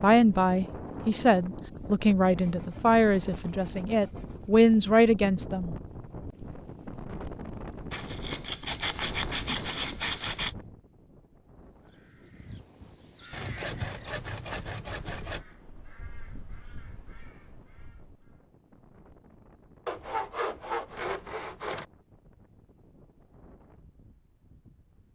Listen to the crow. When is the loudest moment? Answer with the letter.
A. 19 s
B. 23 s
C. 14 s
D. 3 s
C.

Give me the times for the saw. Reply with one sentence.
The saw can be heard from 2.2 to 4.7 s, from 7.9 to 10.6 s, from 13.3 to 15.4 s and from 19.9 to 21.9 s.